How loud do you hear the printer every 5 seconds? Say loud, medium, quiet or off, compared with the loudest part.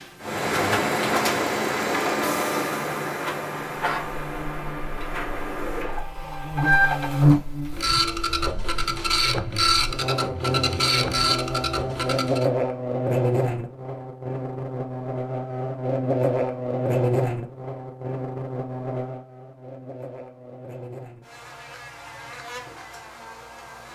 loud, loud, loud, off, off.